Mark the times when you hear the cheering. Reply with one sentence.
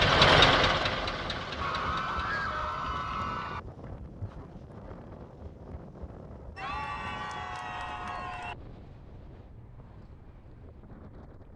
You can hear the cheering from 1.6 to 3.6 s and from 6.5 to 8.6 s.